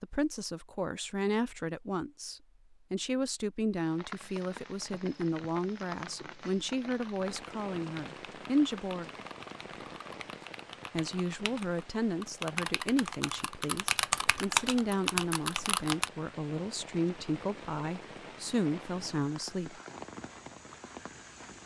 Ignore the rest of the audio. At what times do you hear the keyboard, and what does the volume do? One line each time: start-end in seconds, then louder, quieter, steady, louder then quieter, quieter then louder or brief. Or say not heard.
6.9-16.1 louder.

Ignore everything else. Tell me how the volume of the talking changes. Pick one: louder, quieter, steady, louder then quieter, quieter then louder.
steady.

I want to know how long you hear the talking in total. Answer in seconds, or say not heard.
18 s.